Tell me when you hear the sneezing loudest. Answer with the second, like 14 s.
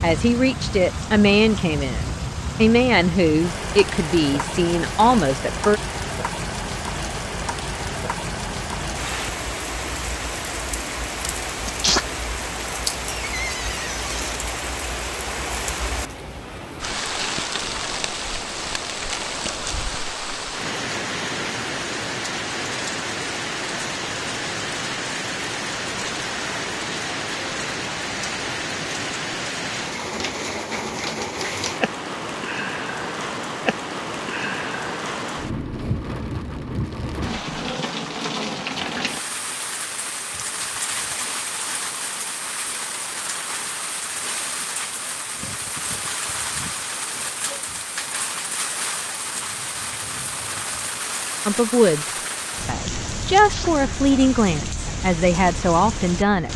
12 s.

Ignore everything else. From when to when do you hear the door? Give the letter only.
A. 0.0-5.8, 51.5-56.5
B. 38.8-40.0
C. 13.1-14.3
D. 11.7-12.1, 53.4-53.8
C.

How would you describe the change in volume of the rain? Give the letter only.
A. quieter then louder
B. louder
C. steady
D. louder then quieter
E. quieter
C.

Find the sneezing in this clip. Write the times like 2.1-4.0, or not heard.
11.7-12.1, 53.4-53.8.